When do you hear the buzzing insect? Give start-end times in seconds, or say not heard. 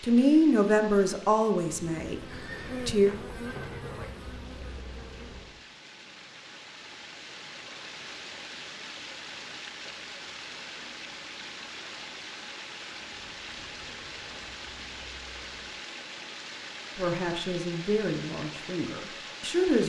1.6-5.7, 13.2-15.8.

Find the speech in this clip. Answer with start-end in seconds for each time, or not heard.
0.0-3.1, 16.9-19.8.